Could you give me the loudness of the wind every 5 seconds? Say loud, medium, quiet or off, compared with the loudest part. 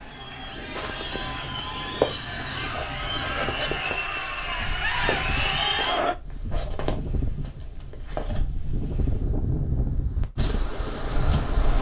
medium, loud, loud.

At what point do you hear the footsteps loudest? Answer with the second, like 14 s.
2 s.